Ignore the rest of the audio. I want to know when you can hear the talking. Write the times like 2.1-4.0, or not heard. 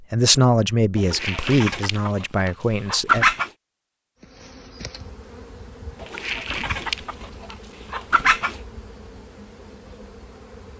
0.1-3.2.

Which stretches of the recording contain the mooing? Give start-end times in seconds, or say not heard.
not heard.